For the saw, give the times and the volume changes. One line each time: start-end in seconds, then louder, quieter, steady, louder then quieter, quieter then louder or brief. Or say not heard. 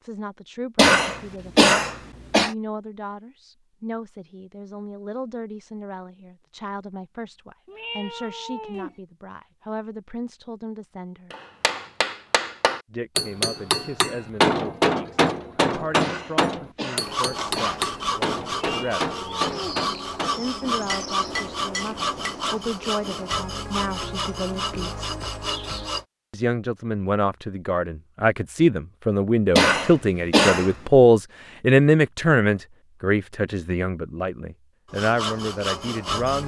17.0-26.1 steady
34.9-36.4 brief.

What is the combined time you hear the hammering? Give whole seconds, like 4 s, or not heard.
12 s.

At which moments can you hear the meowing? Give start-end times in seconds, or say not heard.
7.7-8.9, 18.6-19.8.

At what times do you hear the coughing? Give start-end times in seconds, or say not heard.
0.8-2.5, 16.0-17.8, 29.6-30.8.